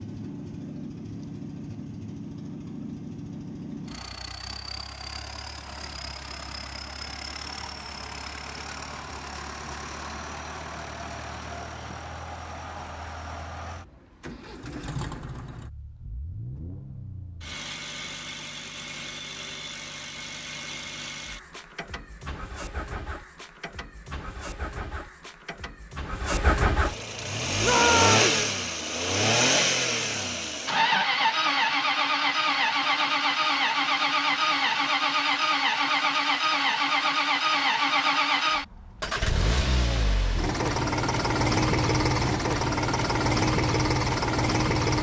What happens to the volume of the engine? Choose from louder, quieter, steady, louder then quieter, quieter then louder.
louder.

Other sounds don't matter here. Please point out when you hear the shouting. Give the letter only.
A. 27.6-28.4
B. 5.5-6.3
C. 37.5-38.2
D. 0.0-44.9
A.